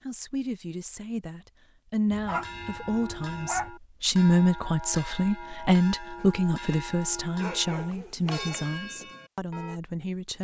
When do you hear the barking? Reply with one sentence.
You can hear the barking from 2.1 to 3.7 s and from 6.2 to 8.7 s.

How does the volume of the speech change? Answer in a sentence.
The volume of the speech goes up, then down.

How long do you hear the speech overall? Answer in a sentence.
The speech can be heard for 10 seconds in total.